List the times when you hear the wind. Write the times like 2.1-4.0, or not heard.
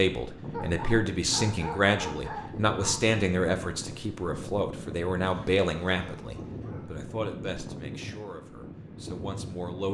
0.1-9.9.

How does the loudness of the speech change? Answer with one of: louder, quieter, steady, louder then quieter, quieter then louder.
quieter.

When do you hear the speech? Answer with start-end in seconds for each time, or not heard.
0.0-9.9.